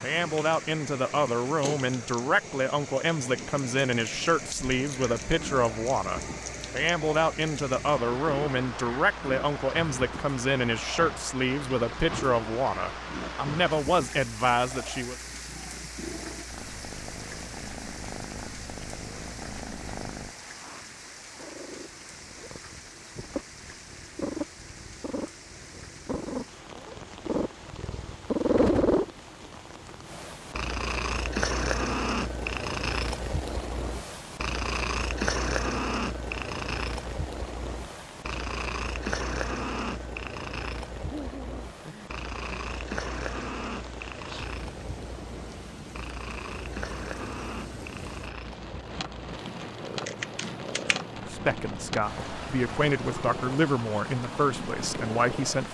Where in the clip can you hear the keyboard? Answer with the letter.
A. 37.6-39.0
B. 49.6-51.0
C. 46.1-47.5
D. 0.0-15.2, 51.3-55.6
B.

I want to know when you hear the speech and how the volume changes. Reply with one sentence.
You can hear the speech from 0.0 to 15.2 s, at a steady volume; and from 51.3 to 55.6 s, getting louder then quieter.